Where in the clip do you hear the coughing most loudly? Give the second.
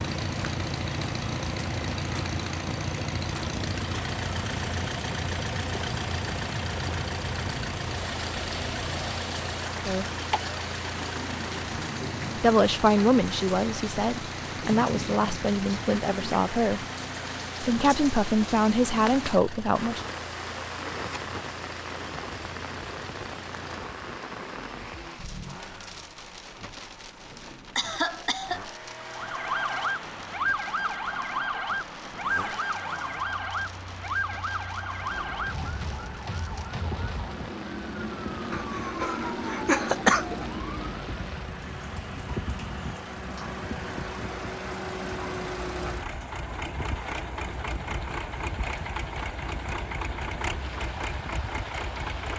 40 s.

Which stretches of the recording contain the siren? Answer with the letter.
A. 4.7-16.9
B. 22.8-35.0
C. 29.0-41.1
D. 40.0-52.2
C.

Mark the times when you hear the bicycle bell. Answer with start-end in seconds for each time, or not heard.
not heard.